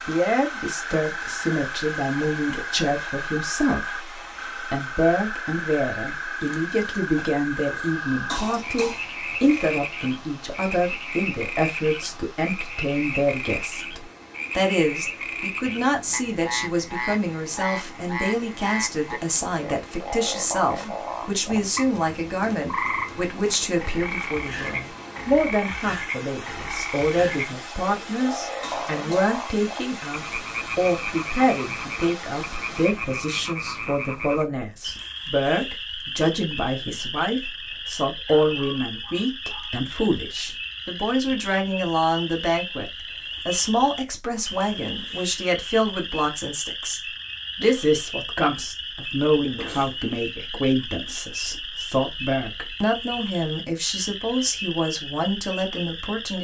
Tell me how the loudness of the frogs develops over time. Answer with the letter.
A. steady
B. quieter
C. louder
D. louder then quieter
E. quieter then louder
A.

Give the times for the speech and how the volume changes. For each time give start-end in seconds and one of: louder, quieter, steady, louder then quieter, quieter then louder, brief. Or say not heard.
0.1-56.3 steady.